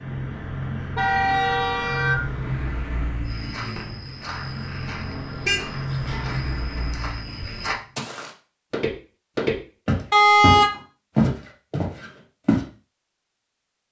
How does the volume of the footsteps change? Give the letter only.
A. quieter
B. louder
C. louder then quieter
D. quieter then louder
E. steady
B.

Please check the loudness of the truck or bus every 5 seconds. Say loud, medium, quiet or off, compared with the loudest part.
loud, loud, off.